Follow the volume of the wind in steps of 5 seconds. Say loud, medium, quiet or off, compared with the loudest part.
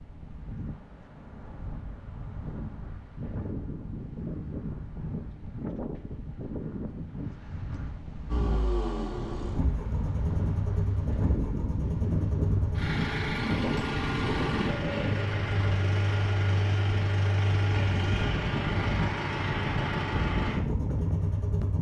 medium, medium, loud, loud, loud.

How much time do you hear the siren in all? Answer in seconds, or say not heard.
not heard.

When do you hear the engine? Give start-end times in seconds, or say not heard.
8.2-21.7.